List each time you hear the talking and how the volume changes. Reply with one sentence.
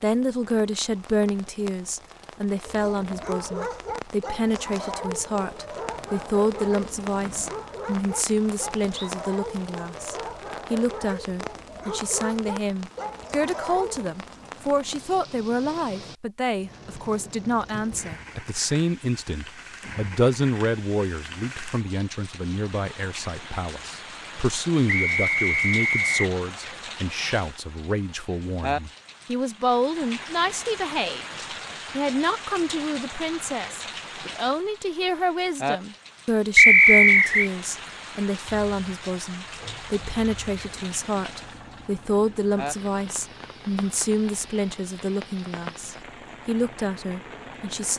The talking can be heard from 0.0 to 47.9 s, at a steady volume.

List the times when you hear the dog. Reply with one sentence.
The dog can be heard from 2.6 to 14.1 s.